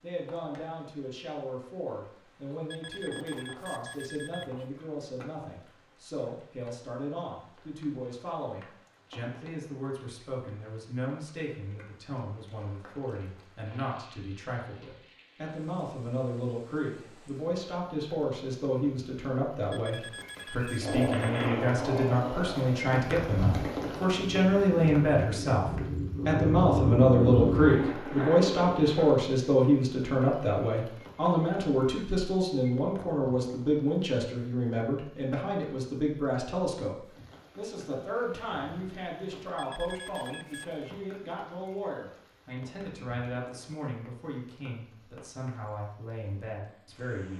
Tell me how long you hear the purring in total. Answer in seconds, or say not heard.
8 s.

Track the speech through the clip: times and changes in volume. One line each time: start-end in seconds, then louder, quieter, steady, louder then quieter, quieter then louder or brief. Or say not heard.
0.0-47.3 louder then quieter.